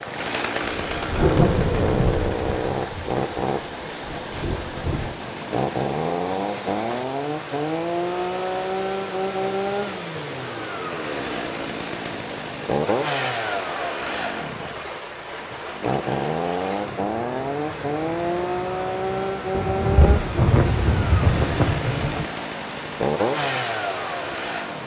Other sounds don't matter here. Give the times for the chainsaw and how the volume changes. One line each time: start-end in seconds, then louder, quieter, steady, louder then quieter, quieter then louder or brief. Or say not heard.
0.0-24.8 steady.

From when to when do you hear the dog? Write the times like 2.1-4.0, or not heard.
not heard.